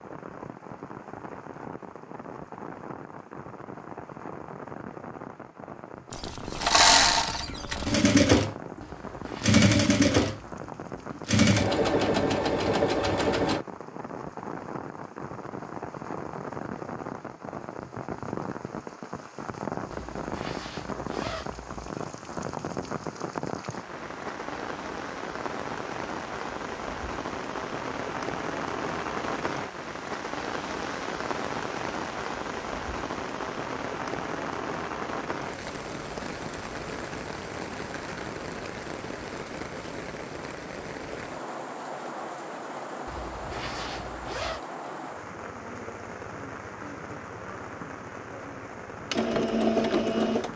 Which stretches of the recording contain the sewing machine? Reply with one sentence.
You can hear the sewing machine from 6.1 to 13.7 s and from 49.1 to 50.5 s.